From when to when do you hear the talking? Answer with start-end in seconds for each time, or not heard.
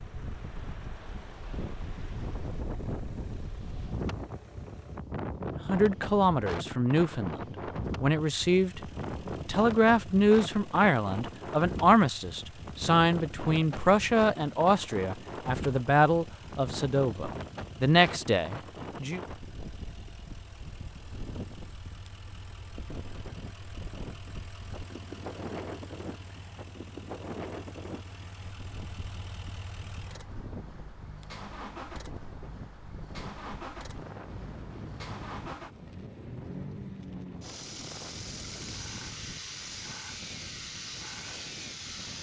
5.7-8.8, 9.4-19.2.